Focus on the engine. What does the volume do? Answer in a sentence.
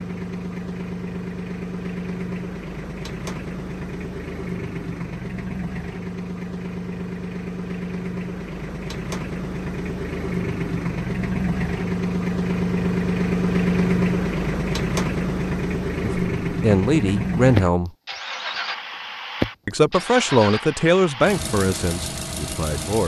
The loudness of the engine goes up, then down.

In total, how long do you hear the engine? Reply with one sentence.
You can hear the engine for 23 seconds altogether.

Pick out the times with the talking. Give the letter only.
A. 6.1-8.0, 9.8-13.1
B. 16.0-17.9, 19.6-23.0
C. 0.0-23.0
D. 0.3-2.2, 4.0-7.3
B.